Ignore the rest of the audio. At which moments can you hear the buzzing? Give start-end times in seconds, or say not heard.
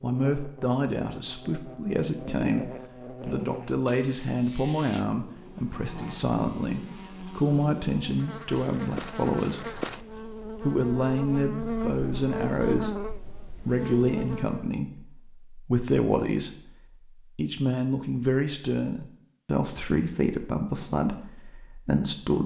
0.0-14.8.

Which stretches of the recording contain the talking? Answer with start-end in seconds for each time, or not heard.
0.0-9.8, 10.4-13.0, 13.7-16.5, 17.4-22.4.